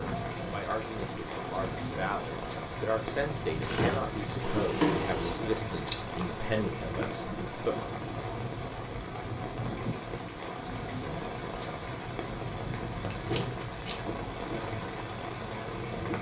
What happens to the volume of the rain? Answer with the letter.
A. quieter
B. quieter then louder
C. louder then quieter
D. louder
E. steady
E.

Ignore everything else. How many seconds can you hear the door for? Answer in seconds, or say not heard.
2 s.